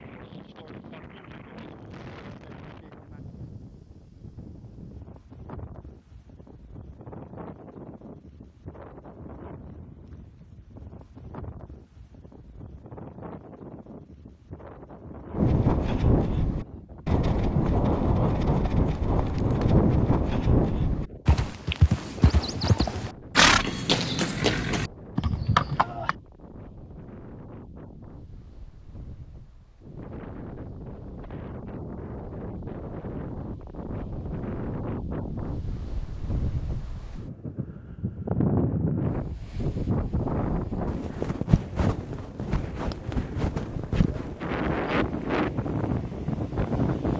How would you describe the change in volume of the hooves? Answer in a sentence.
The volume of the hooves stays about the same.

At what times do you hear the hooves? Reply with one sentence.
You can hear the hooves from 15.3 to 26.1 s.